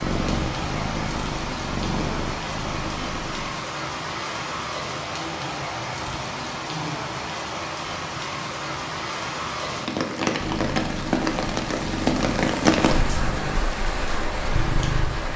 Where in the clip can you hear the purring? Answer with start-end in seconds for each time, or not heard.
0.0-3.5, 10.3-15.3.